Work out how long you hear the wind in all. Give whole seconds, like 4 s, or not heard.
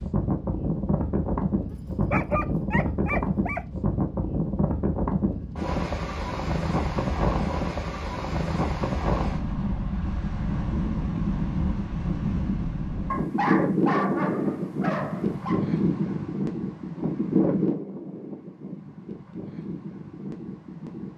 21 s.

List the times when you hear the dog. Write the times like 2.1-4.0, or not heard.
1.7-3.6, 13.1-15.7.